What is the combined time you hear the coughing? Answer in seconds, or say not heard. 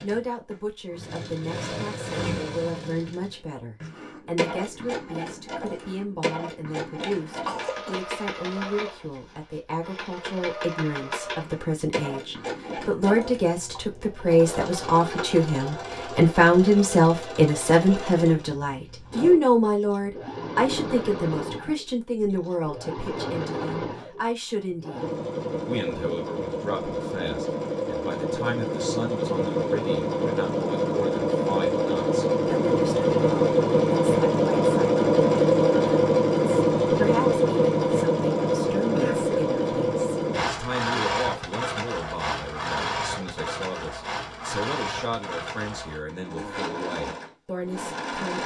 2 s.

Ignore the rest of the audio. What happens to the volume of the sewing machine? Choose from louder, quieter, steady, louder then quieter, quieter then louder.
louder then quieter.